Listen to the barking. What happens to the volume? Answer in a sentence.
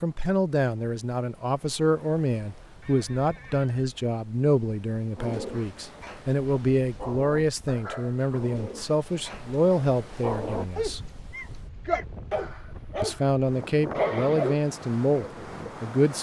The loudness of the barking goes up.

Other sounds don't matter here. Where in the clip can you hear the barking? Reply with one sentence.
You can hear the barking from 5.2 to 15.8 s.